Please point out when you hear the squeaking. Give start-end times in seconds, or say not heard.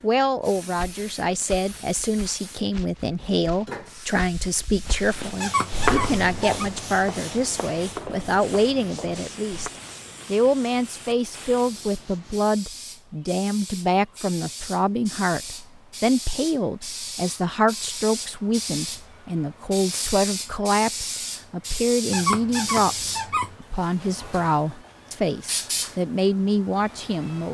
5.3-6.7, 22.1-23.6.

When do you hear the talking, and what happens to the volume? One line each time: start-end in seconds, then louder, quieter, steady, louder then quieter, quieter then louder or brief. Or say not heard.
0.0-27.4 steady.